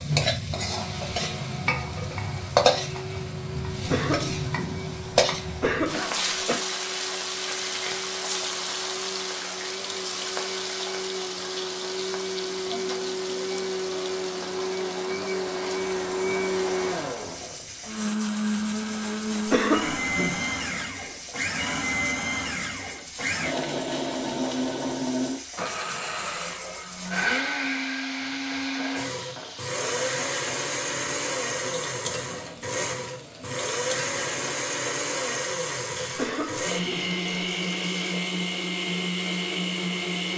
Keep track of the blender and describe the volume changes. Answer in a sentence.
The volume of the blender goes up.